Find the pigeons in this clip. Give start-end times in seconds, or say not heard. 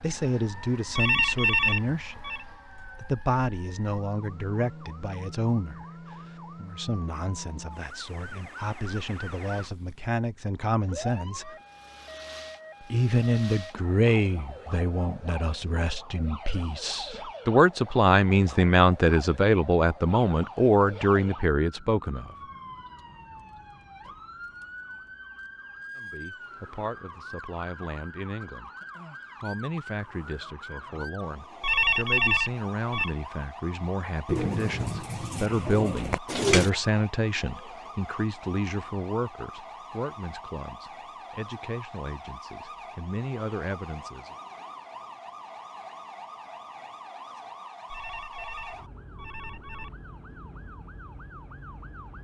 34.2-36.7.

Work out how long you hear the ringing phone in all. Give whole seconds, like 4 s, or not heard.
5 s.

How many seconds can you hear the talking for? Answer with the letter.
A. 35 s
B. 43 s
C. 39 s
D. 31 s
C.